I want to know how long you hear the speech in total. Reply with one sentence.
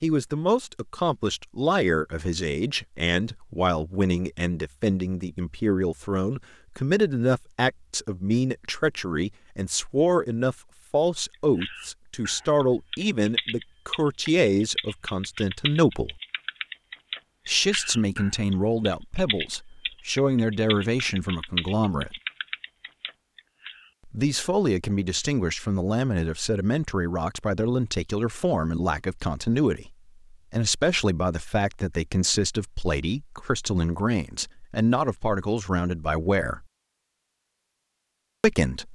The speech can be heard for 34 seconds in total.